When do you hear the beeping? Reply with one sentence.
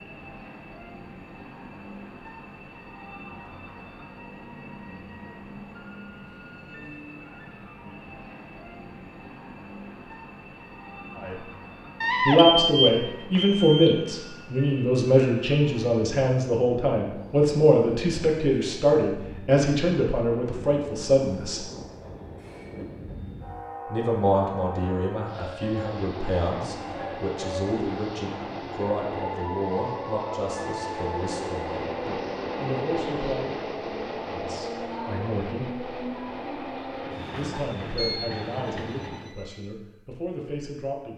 The beeping can be heard from 12.0 to 14.1 s and from 37.9 to 39.5 s.